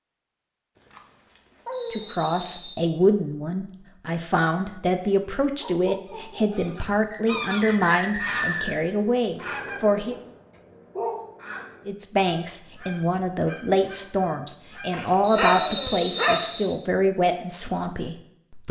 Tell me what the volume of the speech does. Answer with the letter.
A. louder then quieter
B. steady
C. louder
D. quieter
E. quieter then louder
B.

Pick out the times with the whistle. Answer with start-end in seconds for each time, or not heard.
1.7-2.8, 7.1-8.8, 15.2-16.8.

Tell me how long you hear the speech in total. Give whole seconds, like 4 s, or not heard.
15 s.